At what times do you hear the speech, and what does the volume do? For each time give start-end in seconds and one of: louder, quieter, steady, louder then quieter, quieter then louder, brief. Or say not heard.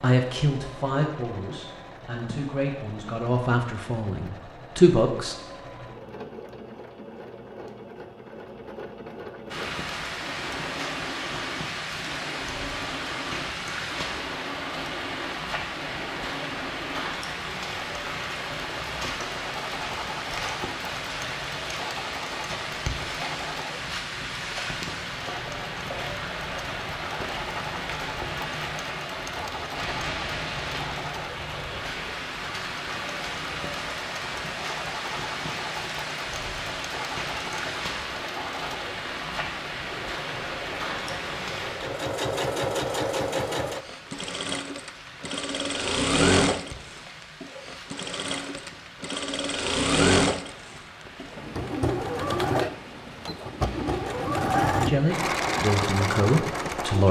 0.0-5.3 quieter then louder
54.8-57.0 brief.